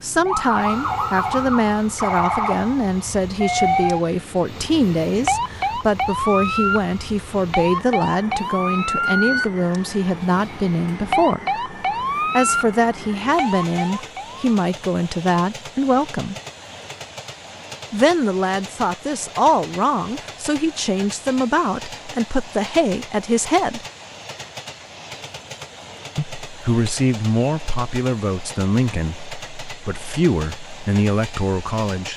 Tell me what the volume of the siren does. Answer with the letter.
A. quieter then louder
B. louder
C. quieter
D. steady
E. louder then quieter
D.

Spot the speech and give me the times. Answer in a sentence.
The speech can be heard from 0.0 to 11.6 s, from 12.3 to 16.4 s, from 17.9 to 23.9 s and from 26.1 to 32.1 s.